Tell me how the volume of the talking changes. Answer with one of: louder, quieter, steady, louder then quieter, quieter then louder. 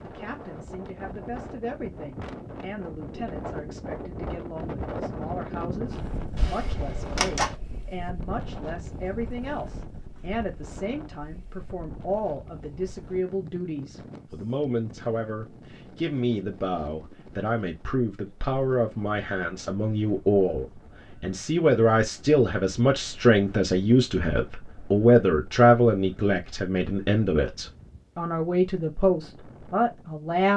louder.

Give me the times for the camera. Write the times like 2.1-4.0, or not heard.
6.3-7.5.